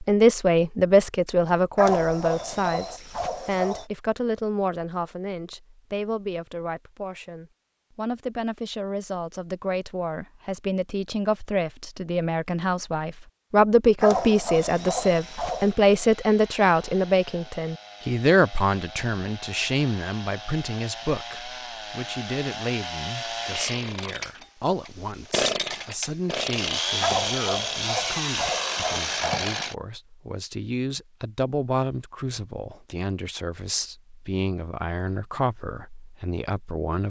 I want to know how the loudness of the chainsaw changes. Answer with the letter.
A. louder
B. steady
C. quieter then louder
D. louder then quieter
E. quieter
A.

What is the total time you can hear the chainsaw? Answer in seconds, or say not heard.
15 s.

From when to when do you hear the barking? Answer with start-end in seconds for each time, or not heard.
1.8-3.9, 14.0-15.8, 27.0-29.6.